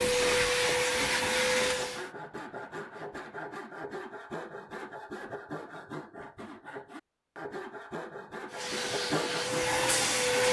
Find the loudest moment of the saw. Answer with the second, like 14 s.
9 s.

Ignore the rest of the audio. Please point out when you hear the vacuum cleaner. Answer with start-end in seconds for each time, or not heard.
0.0-2.1, 8.5-10.4.